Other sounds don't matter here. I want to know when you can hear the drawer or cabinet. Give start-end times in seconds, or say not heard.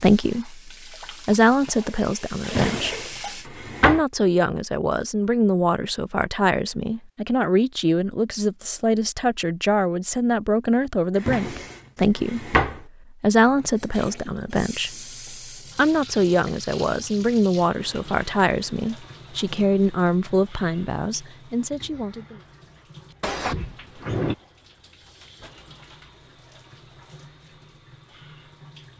2.5-4.0, 11.2-12.8, 23.2-24.4.